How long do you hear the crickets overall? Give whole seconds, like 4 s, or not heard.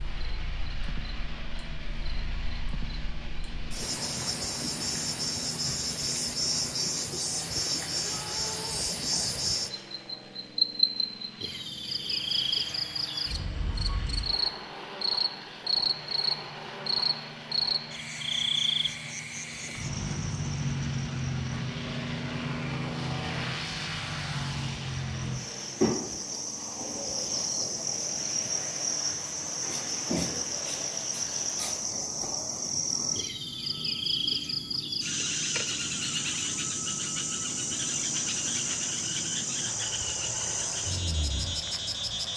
42 s.